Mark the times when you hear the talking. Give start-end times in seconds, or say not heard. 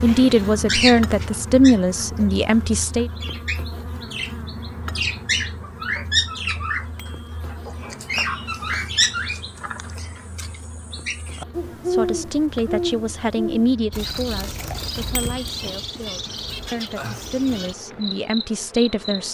0.0-3.1, 11.8-19.2.